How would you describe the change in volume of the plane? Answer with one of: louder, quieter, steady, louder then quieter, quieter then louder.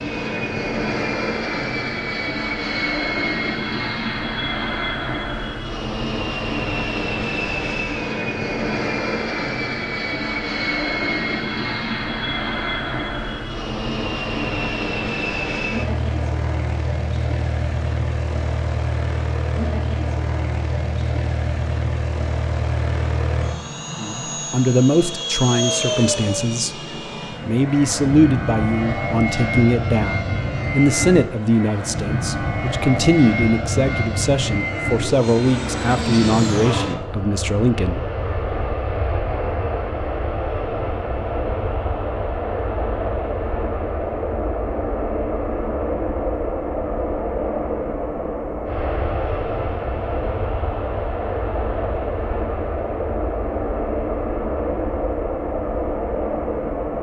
steady.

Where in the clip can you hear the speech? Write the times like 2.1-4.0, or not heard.
23.9-26.7, 27.4-38.0.